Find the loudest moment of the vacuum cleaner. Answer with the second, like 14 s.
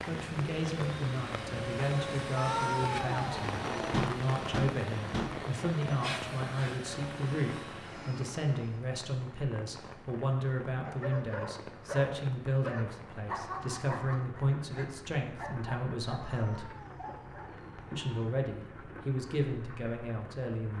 4 s.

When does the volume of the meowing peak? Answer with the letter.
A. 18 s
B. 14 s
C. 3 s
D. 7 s
C.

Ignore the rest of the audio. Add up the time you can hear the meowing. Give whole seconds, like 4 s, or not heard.
4 s.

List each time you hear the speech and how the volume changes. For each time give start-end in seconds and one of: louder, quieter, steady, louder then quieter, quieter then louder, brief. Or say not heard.
0.1-16.7 steady
17.9-20.7 brief.